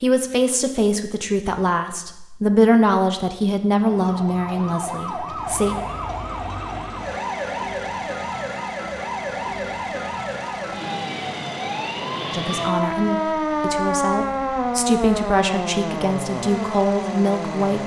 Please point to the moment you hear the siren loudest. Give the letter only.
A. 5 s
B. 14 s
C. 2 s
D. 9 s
B.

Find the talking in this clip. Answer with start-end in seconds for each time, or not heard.
0.0-5.8, 12.3-17.8.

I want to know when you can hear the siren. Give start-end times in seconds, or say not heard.
3.8-17.8.